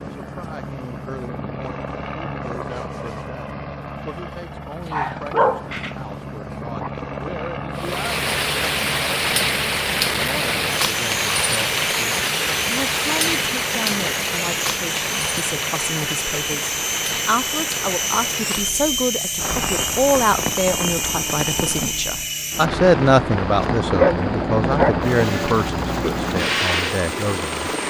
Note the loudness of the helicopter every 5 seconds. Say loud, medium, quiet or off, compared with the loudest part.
medium, medium, medium, loud, loud, loud.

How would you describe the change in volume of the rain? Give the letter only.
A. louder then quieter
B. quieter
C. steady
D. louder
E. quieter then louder
B.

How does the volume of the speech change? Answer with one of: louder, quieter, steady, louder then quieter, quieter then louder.
louder.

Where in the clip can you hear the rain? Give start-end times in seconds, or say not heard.
7.8-27.8.